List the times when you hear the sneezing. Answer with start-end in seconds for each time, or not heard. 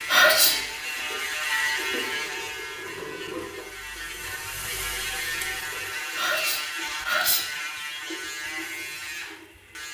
0.1-0.6, 6.2-7.5.